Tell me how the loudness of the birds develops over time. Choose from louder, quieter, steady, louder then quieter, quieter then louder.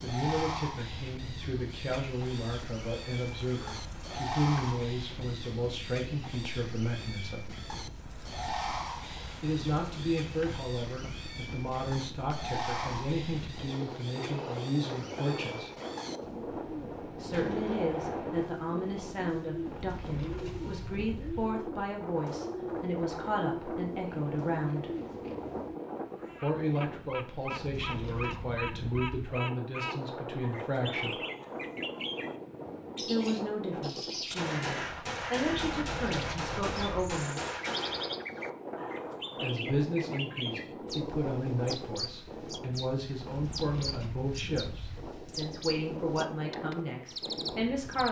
steady.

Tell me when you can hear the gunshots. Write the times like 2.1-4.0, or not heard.
16.4-18.5, 34.3-38.1.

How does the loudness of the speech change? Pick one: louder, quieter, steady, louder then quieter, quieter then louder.
steady.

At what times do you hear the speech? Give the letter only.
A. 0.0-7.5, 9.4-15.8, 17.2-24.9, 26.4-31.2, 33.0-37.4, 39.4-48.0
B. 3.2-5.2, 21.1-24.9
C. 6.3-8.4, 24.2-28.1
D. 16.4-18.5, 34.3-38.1
A.